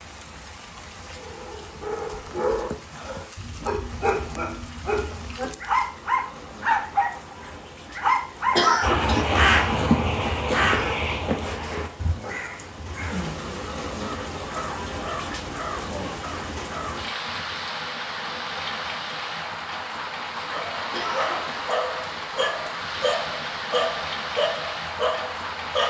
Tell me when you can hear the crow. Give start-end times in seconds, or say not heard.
8.8-17.0.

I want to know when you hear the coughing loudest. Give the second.
9 s.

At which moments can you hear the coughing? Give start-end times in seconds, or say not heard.
8.6-9.2, 20.9-21.6.